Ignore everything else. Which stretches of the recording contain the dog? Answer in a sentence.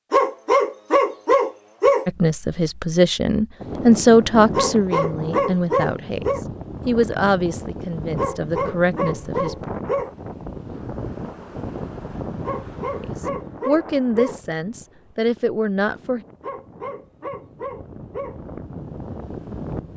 The dog can be heard from 0.1 to 2.0 s, from 4.5 to 6.5 s, from 8.2 to 10.2 s, from 12.4 to 14.4 s and from 16.4 to 18.4 s.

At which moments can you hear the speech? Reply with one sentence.
You can hear the speech from 2.0 to 9.7 s and from 13.0 to 16.2 s.